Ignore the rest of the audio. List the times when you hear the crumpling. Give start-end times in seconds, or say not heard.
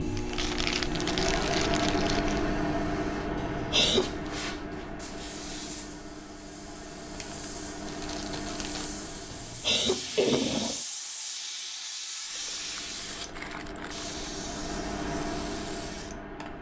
0.1-2.5, 7.1-8.9, 12.3-14.2.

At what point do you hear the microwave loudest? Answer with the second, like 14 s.
2 s.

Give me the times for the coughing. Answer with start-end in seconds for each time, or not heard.
3.4-4.2, 9.3-10.8.